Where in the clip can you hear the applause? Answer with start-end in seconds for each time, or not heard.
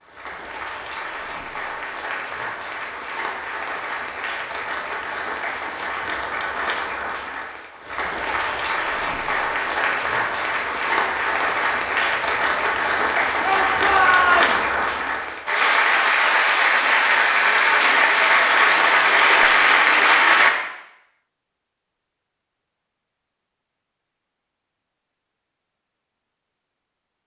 0.0-20.6.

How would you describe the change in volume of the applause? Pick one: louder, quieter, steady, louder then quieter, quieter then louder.
louder.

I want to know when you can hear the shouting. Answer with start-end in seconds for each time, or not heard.
13.4-14.8.